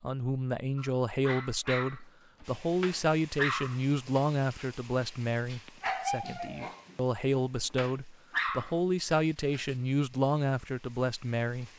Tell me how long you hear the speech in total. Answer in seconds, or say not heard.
12 s.